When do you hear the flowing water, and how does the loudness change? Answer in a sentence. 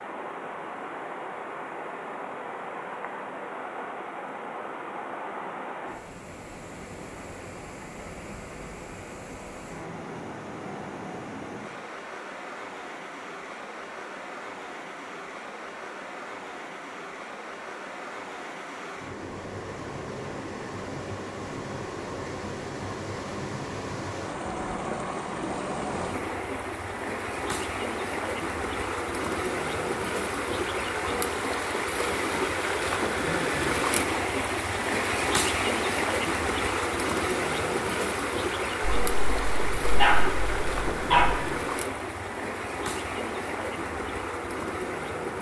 The flowing water can be heard from 0.0 to 45.3 s, getting louder.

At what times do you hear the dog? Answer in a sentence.
The dog can be heard from 39.0 to 41.4 s.